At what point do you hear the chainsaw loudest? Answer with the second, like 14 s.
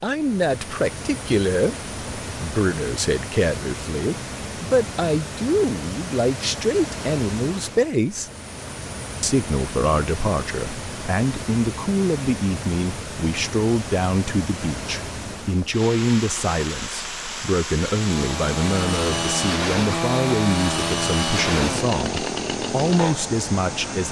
21 s.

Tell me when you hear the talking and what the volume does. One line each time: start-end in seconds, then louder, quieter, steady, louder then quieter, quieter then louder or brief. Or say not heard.
0.0-8.3 steady
9.2-24.0 steady.